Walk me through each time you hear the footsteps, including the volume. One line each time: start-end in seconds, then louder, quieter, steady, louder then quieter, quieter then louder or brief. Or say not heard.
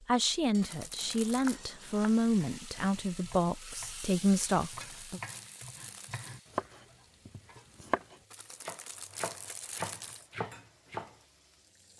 not heard.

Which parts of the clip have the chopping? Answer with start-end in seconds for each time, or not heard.
1.0-11.1.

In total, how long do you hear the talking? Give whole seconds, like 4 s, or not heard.
5 s.